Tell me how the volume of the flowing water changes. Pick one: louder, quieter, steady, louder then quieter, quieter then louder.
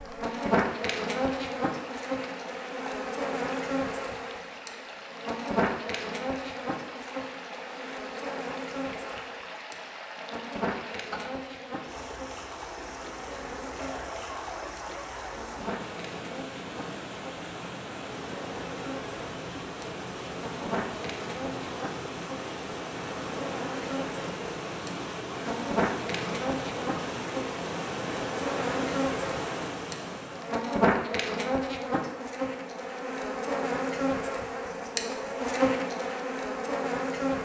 louder.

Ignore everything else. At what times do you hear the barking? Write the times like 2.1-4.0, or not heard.
13.8-15.5.